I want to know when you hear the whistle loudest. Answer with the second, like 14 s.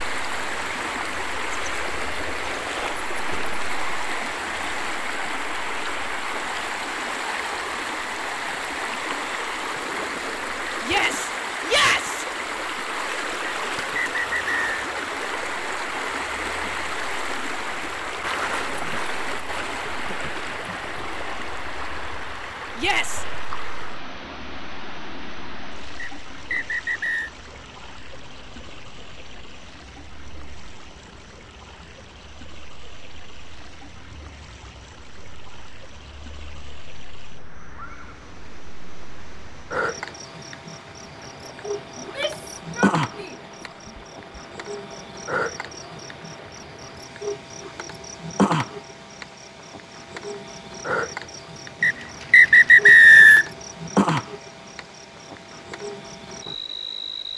53 s.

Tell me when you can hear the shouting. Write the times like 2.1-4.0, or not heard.
10.8-12.2, 22.8-23.2, 42.0-43.4.